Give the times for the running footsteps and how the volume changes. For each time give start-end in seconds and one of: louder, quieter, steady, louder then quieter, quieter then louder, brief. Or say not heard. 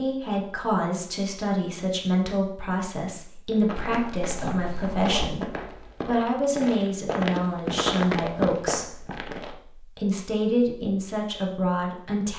3.5-9.6 louder.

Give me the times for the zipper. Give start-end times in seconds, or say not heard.
3.8-5.3.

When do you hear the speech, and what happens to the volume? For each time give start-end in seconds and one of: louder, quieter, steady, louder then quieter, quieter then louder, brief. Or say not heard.
0.0-12.3 steady.